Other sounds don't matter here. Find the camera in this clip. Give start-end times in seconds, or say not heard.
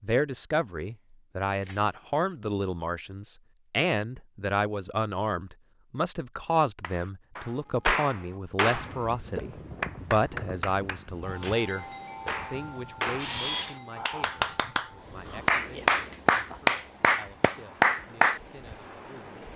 0.6-1.9, 13.2-13.8.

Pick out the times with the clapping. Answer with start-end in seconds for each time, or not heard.
6.8-18.4.